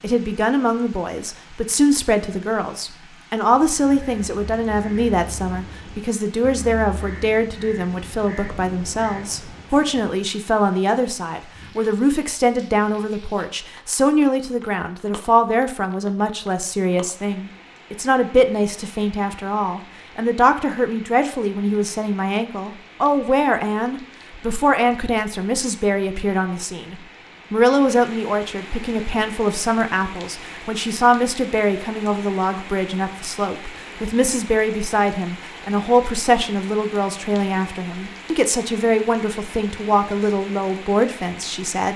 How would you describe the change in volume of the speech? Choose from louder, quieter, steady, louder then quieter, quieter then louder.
steady.